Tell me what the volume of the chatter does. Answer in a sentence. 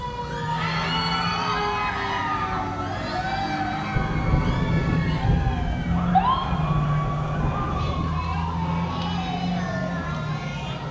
The volume of the chatter goes down.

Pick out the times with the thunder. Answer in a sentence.
The thunder can be heard from 3.9 to 8.2 s.